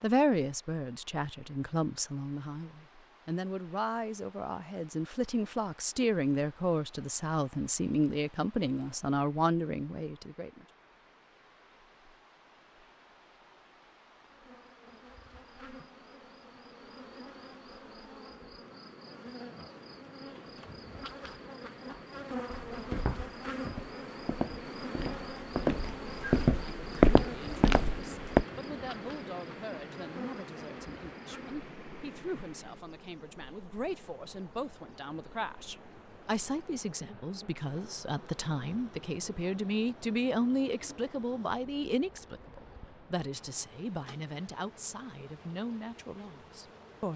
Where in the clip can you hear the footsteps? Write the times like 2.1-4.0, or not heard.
22.7-28.4.